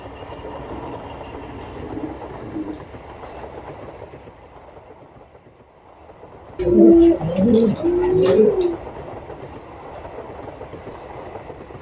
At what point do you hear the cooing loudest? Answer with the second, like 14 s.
7 s.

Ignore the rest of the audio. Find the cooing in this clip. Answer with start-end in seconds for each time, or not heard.
0.6-2.9, 6.5-8.8.